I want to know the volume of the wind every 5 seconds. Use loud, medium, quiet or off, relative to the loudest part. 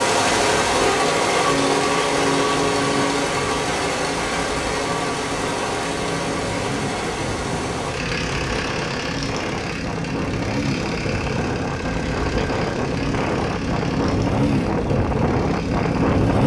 quiet, medium, loud, loud.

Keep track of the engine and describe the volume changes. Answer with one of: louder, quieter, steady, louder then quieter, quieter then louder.
quieter.